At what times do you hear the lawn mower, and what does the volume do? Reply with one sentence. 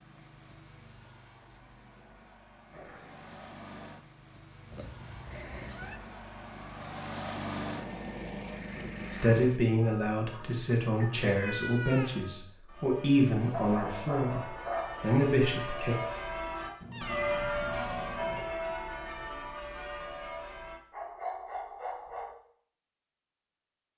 The lawn mower can be heard from 0.0 to 9.7 s, getting louder.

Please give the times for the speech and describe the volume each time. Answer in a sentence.
You can hear the speech from 9.1 to 15.9 s, at a steady volume.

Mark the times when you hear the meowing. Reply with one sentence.
You can hear the meowing from 4.7 to 6.0 s, from 10.9 to 12.2 s and from 16.8 to 18.4 s.